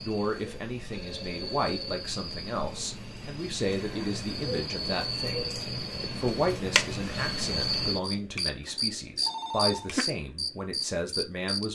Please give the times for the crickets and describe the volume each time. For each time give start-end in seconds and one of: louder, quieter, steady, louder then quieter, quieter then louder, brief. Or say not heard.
0.0-11.6 louder.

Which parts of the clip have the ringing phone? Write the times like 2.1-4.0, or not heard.
0.8-2.0, 8.3-9.9.